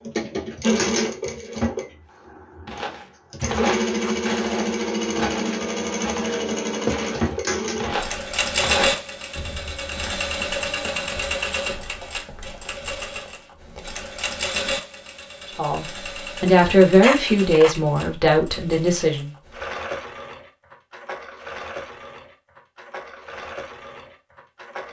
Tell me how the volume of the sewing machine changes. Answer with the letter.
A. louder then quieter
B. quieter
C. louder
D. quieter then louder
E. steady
B.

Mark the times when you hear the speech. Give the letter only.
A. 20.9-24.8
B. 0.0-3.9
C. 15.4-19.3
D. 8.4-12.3
C.